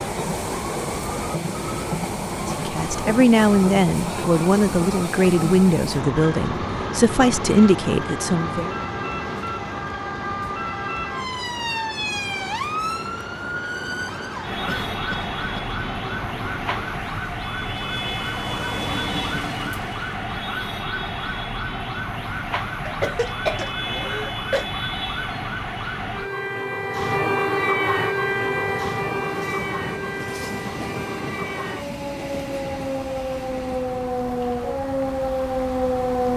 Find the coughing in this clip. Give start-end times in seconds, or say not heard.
14.7-15.7, 22.9-24.6.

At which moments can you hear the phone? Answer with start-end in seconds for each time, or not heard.
not heard.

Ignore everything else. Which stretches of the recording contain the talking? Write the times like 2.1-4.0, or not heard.
2.5-8.8.